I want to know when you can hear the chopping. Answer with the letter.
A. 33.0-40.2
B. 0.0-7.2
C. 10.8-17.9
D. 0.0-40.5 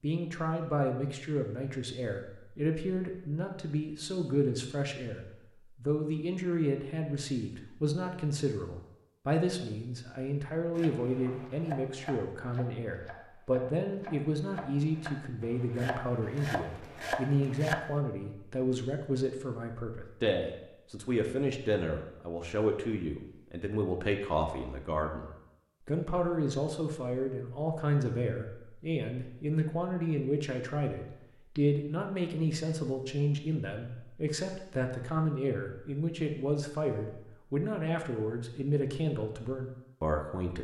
C.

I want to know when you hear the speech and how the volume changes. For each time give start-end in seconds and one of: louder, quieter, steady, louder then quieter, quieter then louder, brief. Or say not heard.
0.0-40.5 steady.